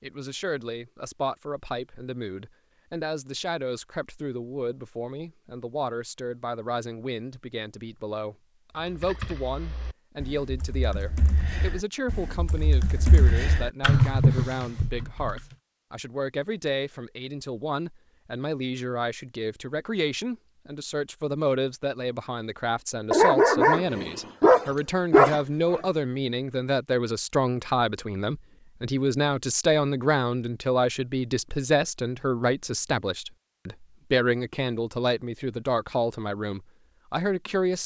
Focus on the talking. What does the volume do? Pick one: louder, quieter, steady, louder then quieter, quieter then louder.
louder.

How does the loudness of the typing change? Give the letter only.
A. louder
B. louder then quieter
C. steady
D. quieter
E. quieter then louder
A.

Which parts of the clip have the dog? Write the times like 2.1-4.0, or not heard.
23.1-25.8.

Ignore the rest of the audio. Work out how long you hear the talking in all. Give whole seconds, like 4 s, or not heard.
38 s.